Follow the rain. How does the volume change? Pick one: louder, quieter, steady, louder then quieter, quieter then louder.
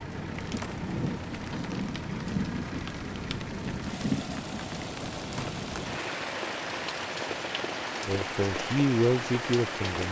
steady.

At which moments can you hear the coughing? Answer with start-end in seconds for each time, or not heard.
not heard.